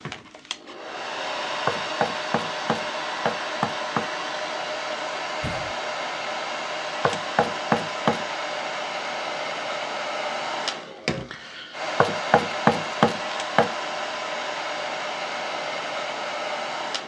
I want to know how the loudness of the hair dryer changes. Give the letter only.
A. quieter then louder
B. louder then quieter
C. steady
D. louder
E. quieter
C.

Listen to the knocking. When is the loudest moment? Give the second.
13 s.